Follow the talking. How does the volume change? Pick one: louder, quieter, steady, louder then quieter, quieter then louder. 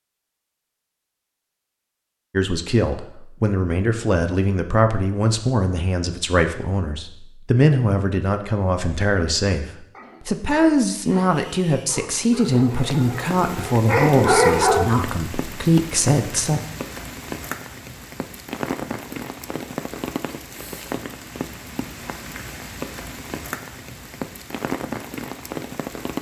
steady.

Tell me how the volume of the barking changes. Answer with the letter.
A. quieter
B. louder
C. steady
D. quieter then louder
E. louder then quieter
B.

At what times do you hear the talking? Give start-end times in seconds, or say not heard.
2.3-9.7, 10.2-16.6.